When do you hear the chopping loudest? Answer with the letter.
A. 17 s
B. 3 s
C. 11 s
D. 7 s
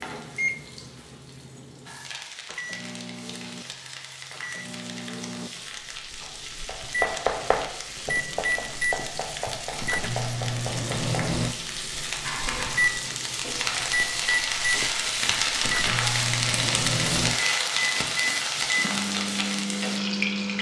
D.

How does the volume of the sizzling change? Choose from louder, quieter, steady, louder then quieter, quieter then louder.
louder.